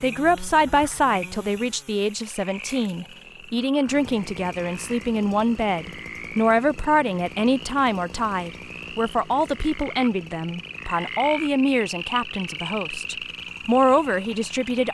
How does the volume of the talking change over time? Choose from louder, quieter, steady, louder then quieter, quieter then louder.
steady.